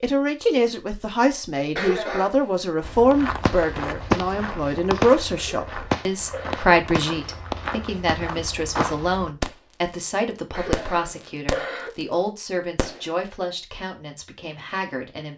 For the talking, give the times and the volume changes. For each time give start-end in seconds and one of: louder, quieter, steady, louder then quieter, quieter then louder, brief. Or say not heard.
0.0-15.3 quieter.